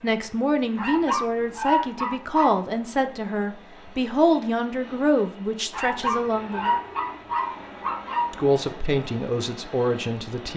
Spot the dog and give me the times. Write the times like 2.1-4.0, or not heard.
0.8-2.6, 5.7-8.3.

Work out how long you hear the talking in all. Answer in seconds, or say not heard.
9 s.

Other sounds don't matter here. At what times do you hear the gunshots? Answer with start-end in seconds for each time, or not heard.
not heard.